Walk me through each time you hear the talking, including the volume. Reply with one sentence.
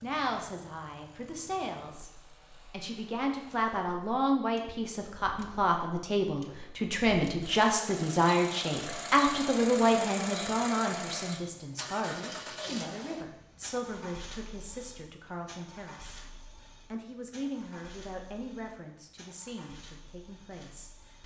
The talking can be heard from 0.0 to 16.2 s, getting louder then quieter; and from 16.9 to 21.2 s, getting quieter.